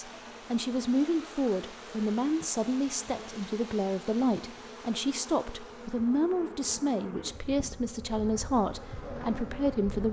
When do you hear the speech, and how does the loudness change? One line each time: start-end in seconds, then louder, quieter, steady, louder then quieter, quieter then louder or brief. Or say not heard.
0.0-10.0 steady.